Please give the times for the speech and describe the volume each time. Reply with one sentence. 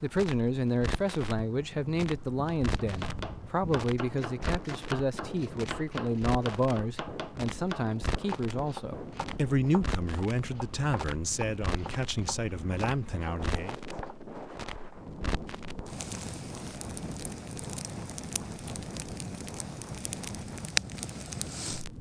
You can hear the speech from 0.0 to 13.8 s, at a steady volume.